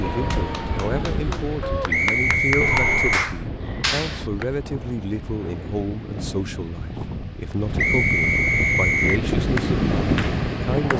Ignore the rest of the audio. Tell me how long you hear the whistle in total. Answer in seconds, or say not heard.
3 s.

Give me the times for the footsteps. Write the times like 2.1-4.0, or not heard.
not heard.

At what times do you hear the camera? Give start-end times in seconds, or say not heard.
2.6-3.2.